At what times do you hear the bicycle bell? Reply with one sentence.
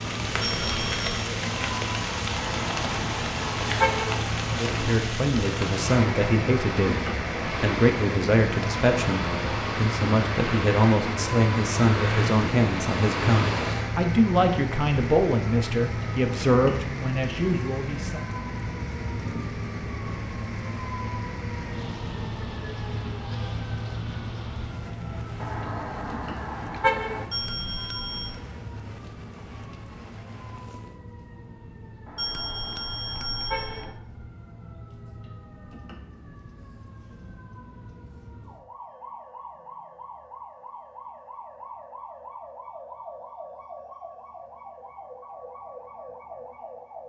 You can hear the bicycle bell from 0.4 to 1.1 s, from 27.3 to 28.4 s and from 32.1 to 34.0 s.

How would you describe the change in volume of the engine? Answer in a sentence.
The volume of the engine goes up.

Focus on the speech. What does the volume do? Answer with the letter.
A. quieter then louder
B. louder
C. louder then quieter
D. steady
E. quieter
D.